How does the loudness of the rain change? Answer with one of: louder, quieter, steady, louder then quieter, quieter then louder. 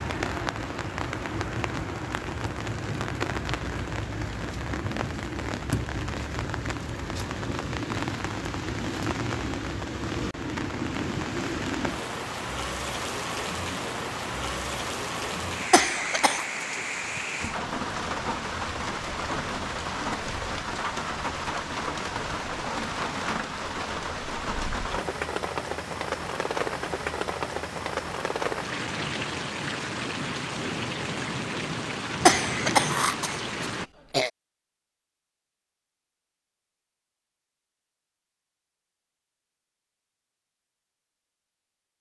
steady.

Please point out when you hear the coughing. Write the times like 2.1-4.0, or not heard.
15.7-16.4, 32.2-34.3.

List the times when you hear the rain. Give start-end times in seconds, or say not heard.
0.0-33.9.